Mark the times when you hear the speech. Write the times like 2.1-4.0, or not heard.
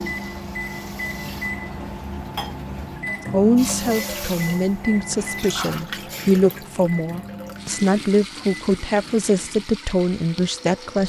3.3-11.0.